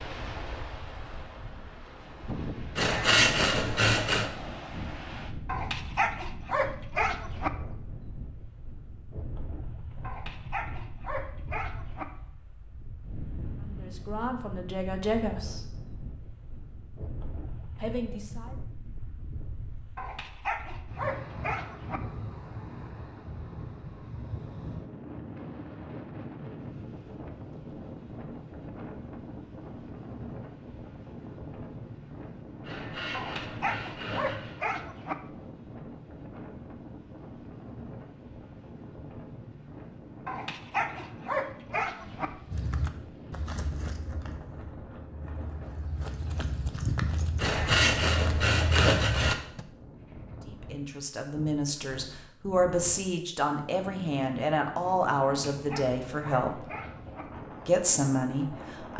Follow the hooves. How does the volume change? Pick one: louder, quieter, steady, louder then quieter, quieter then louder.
quieter then louder.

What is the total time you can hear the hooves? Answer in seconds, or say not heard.
7 s.